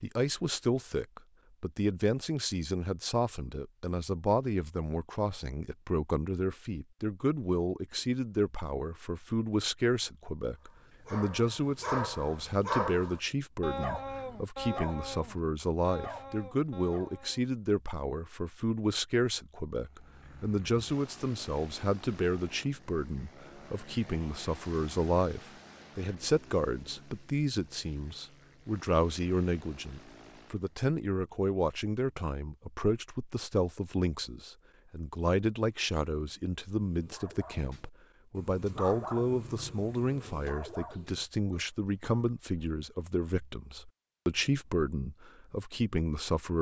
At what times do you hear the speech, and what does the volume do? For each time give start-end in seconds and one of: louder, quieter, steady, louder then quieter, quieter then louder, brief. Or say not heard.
0.0-46.5 steady.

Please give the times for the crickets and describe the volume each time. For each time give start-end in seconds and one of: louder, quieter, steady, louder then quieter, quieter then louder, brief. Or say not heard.
not heard.